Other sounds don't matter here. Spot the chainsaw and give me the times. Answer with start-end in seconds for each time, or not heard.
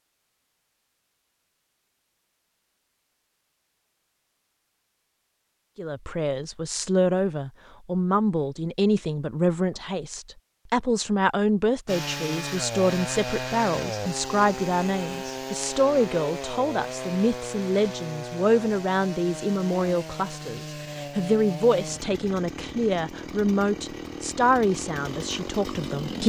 11.8-26.2.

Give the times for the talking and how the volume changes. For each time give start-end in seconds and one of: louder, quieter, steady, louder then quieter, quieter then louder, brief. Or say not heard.
5.8-26.2 steady.